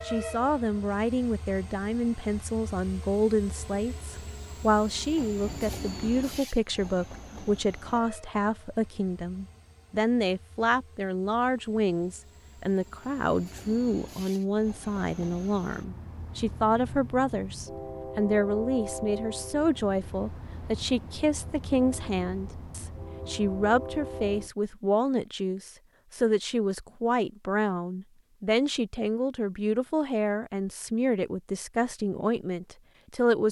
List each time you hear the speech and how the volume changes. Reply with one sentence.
The speech can be heard from 0.0 to 33.4 s, at a steady volume.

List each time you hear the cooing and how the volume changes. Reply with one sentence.
The cooing can't be heard in this clip.